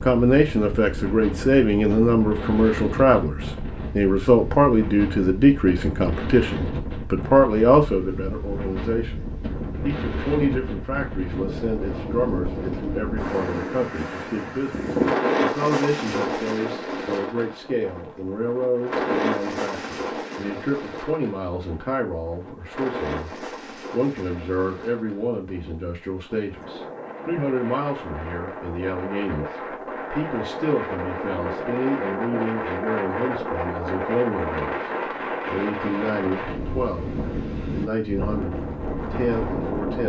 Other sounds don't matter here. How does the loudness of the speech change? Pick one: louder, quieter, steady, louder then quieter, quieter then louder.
quieter.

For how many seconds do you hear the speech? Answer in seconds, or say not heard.
40 s.